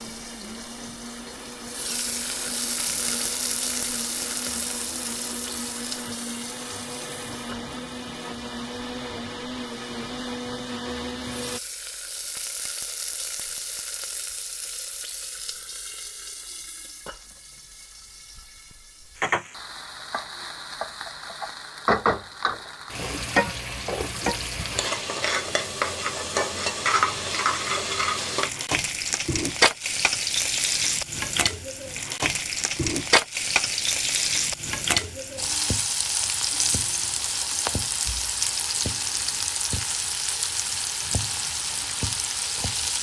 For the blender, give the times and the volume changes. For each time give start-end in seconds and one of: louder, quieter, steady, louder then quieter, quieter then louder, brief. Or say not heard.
0.0-11.6 louder.